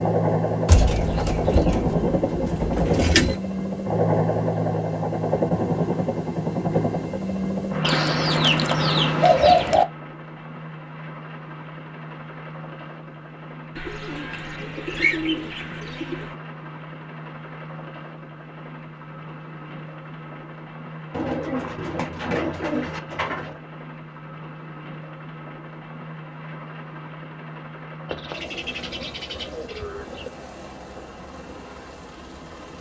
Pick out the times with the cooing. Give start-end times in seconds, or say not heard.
0.7-3.4, 7.8-9.8, 13.8-16.4, 21.1-23.6, 28.1-30.3.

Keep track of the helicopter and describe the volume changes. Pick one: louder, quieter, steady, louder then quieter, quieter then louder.
quieter.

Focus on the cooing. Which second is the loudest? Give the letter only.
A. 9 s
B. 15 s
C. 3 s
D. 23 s
A.